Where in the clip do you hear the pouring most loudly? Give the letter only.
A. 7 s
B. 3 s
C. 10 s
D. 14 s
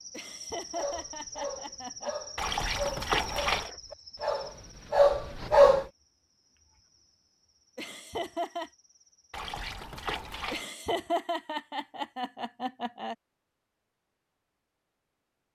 B.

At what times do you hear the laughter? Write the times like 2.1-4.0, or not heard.
0.1-2.1, 7.8-8.7, 10.5-13.2.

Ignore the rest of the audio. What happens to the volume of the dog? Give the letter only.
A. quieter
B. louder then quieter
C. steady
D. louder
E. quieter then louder
D.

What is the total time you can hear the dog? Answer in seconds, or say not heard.
5 s.